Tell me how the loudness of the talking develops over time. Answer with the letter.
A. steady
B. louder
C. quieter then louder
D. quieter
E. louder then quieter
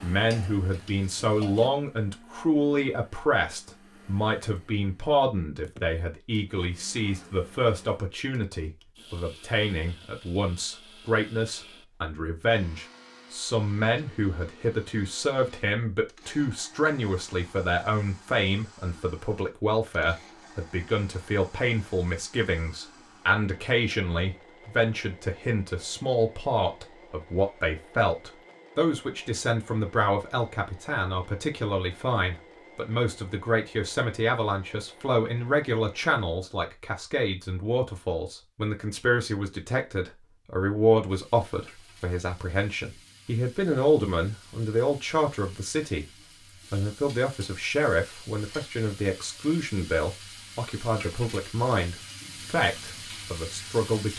A.